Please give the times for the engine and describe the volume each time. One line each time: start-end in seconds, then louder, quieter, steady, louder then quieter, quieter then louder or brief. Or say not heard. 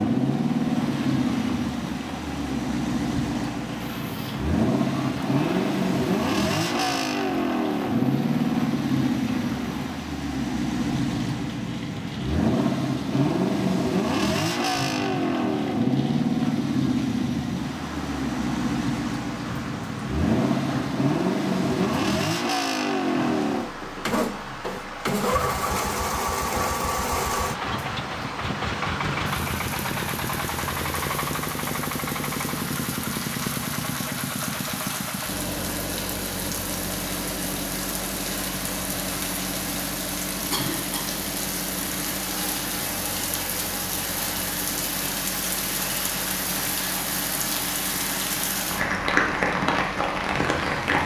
0.0-51.0 quieter.